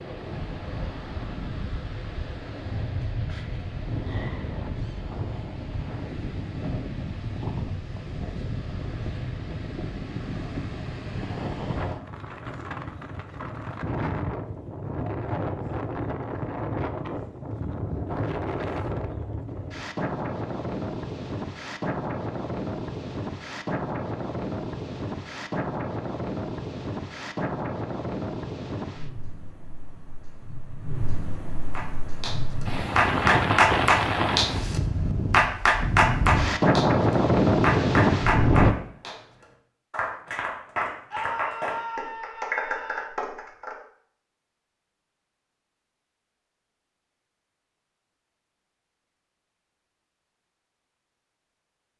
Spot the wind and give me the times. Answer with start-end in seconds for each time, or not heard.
0.0-38.8.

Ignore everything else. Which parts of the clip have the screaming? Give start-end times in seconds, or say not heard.
41.1-43.0.